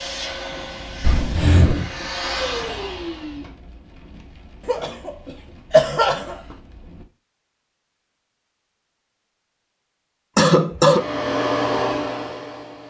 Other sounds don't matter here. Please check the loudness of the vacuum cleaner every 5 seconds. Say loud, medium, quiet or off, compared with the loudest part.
medium, off, loud.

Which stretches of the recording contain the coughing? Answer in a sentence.
You can hear the coughing from 1.0 to 1.9 s, from 4.7 to 6.5 s and from 10.3 to 11.0 s.